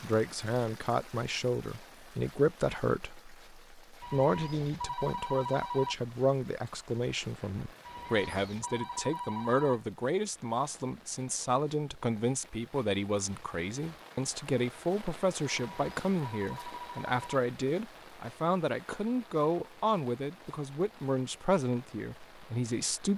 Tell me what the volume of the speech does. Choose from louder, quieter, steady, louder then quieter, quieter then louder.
steady.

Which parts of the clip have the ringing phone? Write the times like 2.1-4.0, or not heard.
4.0-6.0, 7.8-9.8, 15.7-17.4.